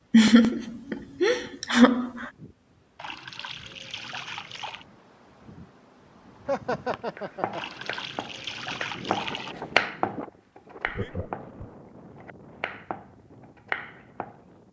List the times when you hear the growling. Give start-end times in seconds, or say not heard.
not heard.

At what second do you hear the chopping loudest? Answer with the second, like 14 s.
10 s.